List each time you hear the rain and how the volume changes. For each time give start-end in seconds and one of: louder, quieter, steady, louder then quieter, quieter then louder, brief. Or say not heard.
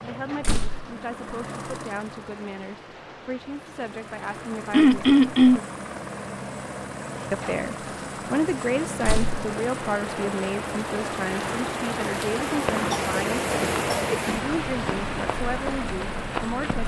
0.0-16.8 louder.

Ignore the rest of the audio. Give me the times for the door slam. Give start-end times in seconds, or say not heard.
0.4-0.8, 9.0-9.4.